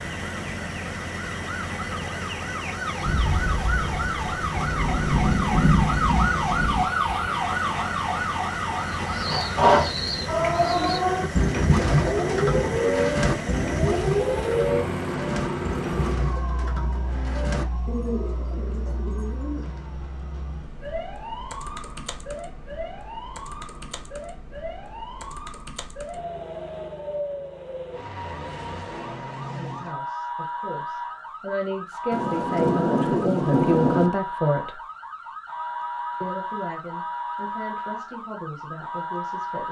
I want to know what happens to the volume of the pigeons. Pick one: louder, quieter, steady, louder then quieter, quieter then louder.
quieter.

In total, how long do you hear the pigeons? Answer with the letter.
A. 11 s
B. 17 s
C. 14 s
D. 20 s
A.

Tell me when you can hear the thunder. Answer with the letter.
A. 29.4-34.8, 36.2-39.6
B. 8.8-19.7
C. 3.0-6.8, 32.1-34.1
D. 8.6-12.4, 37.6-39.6
C.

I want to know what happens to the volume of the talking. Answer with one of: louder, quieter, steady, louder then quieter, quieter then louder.
louder then quieter.